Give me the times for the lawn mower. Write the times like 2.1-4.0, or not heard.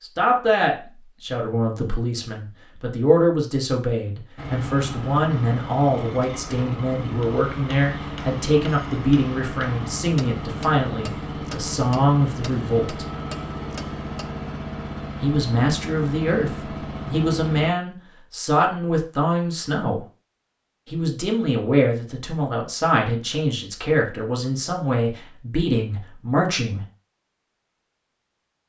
4.3-17.7.